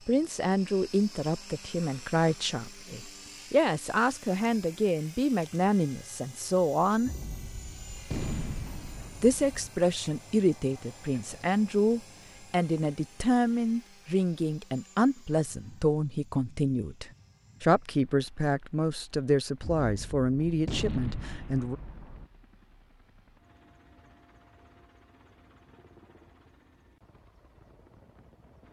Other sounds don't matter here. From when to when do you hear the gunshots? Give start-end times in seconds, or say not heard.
7.0-9.7, 19.6-22.2.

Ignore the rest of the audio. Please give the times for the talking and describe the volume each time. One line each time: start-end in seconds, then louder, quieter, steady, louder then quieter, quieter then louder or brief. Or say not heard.
0.1-7.1 steady
9.2-21.8 steady.